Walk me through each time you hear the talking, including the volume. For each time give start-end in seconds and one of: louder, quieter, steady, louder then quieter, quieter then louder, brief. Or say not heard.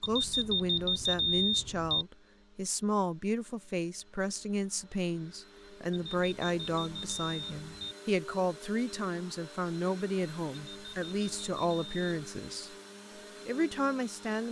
0.0-12.8 steady
13.4-14.4 brief.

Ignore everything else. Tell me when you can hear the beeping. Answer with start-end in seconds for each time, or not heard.
0.0-2.0, 5.9-8.0, 10.7-12.1.